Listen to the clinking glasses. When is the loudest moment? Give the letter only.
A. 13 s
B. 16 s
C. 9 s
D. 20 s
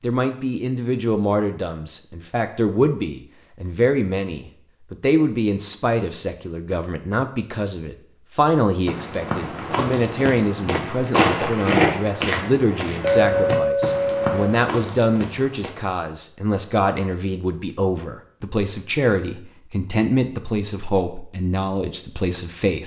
A.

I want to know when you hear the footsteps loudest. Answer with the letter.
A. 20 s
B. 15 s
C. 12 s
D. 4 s
C.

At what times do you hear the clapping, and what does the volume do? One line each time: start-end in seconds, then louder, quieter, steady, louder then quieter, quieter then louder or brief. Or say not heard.
not heard.